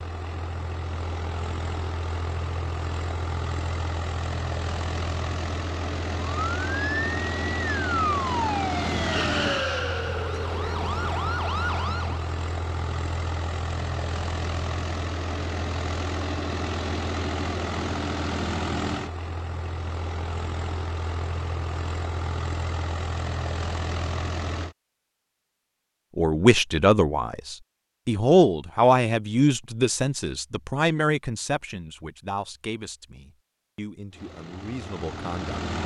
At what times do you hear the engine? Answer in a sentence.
You can hear the engine from 0.0 to 24.8 s and from 34.1 to 35.8 s.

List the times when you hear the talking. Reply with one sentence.
The talking can be heard from 26.1 to 35.8 s.